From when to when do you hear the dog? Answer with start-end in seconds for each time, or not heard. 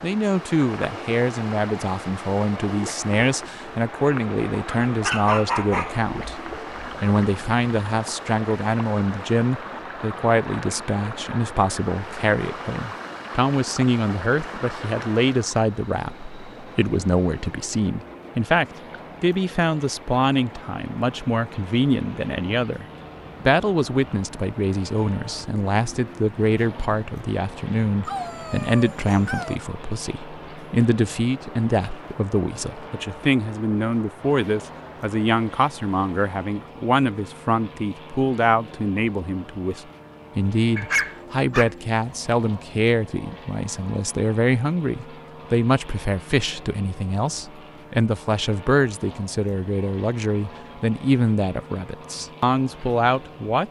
4.7-6.1, 28.1-29.6, 40.8-42.1.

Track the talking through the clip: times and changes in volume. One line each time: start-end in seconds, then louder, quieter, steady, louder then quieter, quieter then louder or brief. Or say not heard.
0.0-53.6 steady.